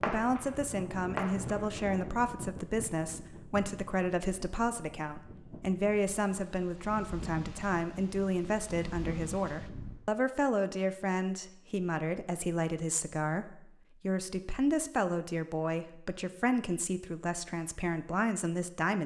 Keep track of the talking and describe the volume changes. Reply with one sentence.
The loudness of the talking stays about the same.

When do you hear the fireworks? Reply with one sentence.
The fireworks can be heard from 0.0 to 0.6 s and from 1.1 to 1.7 s.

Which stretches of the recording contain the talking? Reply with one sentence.
The talking can be heard from 0.1 to 19.0 s.